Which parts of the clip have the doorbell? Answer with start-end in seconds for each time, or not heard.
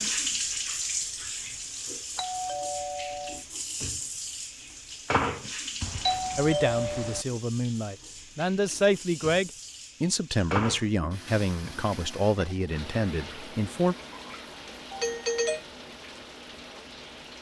2.1-3.4, 5.8-7.2, 14.9-15.7.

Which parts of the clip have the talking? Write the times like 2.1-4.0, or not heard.
6.3-13.9.